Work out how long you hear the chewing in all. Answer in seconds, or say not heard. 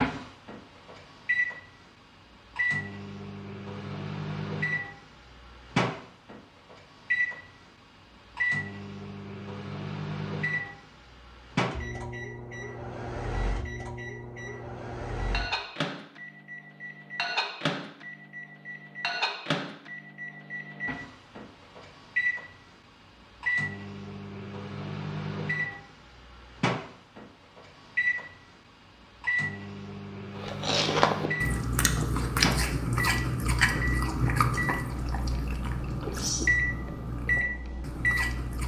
8 s.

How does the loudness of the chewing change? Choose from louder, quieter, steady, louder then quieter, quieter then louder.
quieter.